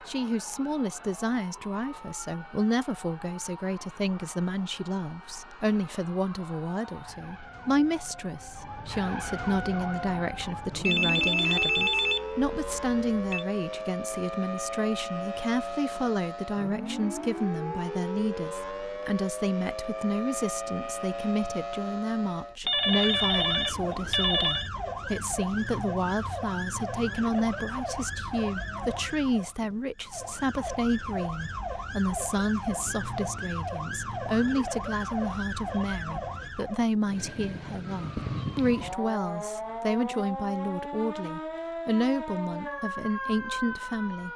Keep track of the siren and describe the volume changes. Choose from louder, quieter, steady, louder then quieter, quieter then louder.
louder.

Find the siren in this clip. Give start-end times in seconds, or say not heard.
0.0-44.3.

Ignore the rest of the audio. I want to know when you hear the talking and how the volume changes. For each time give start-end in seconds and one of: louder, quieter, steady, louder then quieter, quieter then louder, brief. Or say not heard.
0.1-44.3 steady.